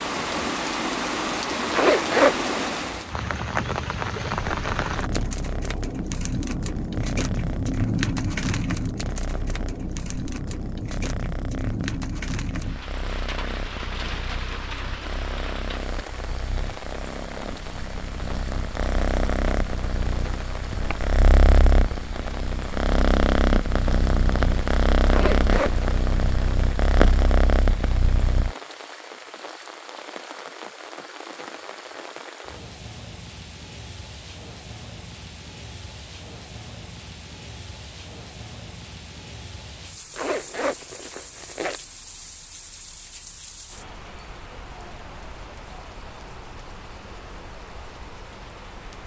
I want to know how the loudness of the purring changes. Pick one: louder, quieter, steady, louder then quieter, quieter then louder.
louder.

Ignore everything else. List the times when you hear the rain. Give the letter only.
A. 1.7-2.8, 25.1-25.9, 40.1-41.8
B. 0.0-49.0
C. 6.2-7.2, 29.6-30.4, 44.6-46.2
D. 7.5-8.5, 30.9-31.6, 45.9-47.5
B.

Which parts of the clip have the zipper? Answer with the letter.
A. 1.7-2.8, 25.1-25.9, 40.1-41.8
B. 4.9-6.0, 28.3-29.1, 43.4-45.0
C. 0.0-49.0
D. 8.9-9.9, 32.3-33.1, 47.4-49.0
A.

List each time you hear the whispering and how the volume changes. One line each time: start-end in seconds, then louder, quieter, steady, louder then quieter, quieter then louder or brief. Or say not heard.
not heard.